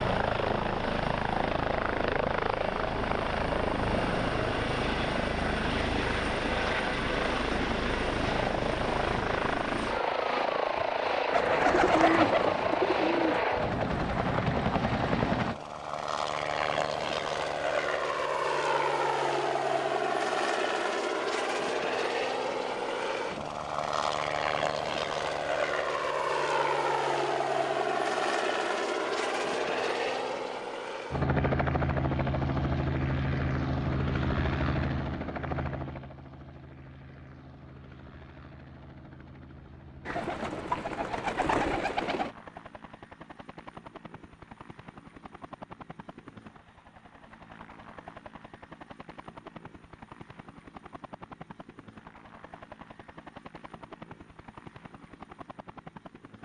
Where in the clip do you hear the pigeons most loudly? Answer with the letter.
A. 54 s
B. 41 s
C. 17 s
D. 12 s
D.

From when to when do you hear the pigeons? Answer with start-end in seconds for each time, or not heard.
11.3-13.4, 40.0-42.4.